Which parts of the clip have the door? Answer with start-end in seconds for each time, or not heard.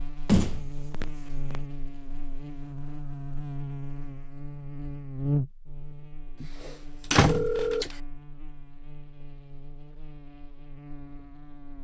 0.2-1.6, 6.4-7.9.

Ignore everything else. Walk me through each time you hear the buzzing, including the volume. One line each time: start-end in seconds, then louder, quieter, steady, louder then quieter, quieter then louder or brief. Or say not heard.
0.0-11.8 louder then quieter.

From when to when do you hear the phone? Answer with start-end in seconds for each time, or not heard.
7.2-7.8.